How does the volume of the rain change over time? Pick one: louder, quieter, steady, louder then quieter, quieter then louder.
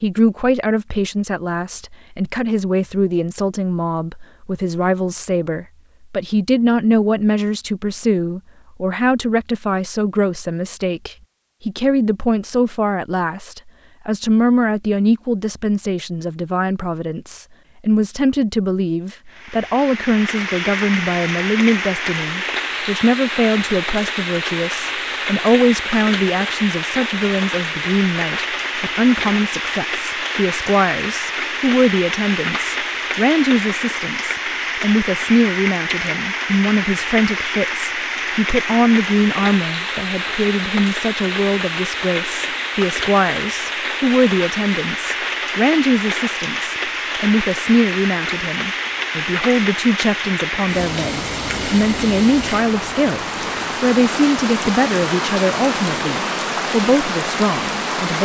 steady.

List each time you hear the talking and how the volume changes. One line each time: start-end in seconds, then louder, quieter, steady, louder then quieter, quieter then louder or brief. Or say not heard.
0.0-58.2 steady.